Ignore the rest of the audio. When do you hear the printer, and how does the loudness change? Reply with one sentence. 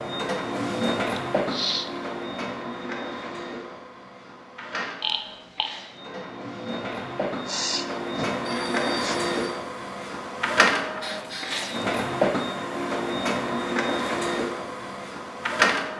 The printer can be heard from 0.0 to 15.9 s, getting quieter then louder.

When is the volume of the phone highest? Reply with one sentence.
The loudest moment of the phone is at 5 seconds.